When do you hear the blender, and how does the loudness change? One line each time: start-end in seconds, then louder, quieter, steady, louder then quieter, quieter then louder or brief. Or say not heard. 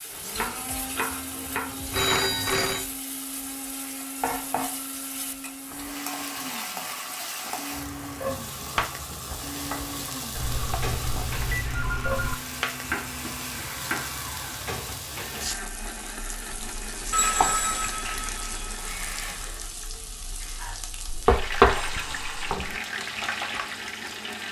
0.0-24.4 steady.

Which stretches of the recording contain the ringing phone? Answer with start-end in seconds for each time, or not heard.
1.9-2.9, 10.3-12.3, 17.1-19.6.